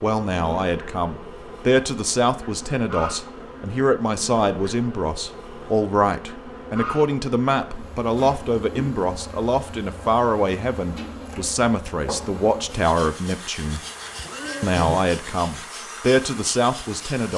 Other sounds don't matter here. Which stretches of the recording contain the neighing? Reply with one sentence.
You can hear the neighing from 13.8 to 15.0 s.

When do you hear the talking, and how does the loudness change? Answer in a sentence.
You can hear the talking from 0.0 to 13.8 s, at a steady volume; and briefly from 14.6 to 17.3 s.